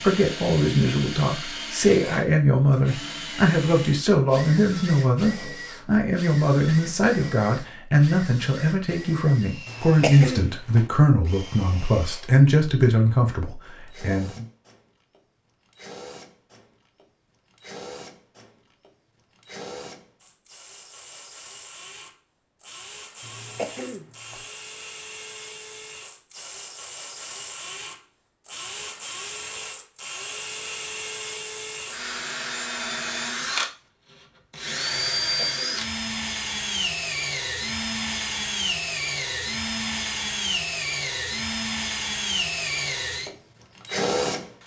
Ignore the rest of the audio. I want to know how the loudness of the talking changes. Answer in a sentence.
The loudness of the talking stays about the same.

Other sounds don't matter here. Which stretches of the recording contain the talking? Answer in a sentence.
You can hear the talking from 0.0 to 14.4 s.